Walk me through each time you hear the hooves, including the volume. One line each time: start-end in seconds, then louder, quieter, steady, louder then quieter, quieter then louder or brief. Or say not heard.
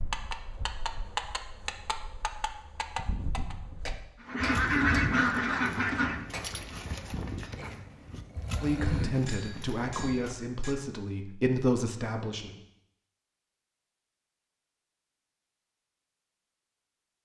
0.0-10.3 steady.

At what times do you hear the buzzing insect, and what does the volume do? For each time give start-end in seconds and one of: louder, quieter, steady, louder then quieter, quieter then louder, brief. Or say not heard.
not heard.